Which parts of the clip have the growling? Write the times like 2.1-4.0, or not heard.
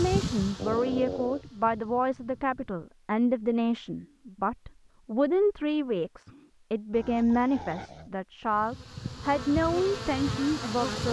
0.6-1.4, 6.9-8.1.